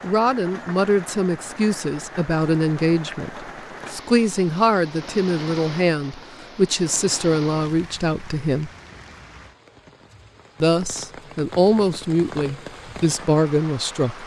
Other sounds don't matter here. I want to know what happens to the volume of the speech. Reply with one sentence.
The volume of the speech stays about the same.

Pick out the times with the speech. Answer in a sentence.
You can hear the speech from 0.0 to 8.7 s and from 10.6 to 14.2 s.